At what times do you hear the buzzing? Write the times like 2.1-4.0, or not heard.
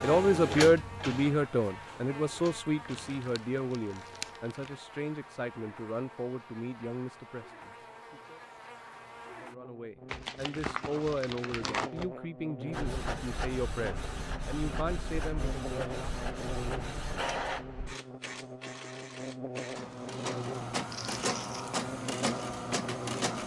0.0-23.4.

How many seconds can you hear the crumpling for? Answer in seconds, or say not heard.
5 s.